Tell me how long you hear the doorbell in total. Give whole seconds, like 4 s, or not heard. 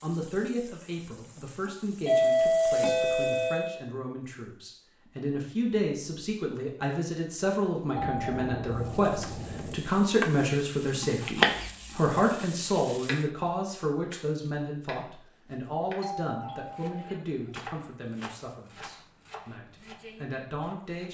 5 s.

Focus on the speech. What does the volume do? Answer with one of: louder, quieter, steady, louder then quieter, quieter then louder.
louder then quieter.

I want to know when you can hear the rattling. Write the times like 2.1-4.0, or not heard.
17.5-19.0.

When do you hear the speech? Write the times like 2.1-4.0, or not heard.
0.0-21.0.